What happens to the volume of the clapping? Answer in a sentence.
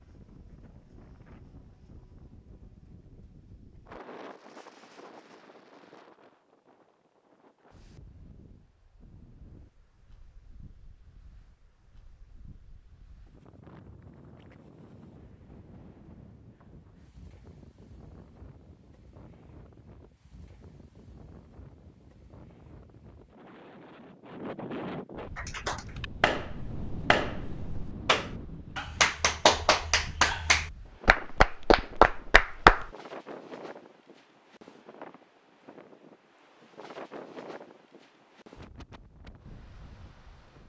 The loudness of the clapping goes up.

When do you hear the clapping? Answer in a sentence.
The clapping can be heard from 25.4 to 32.9 s.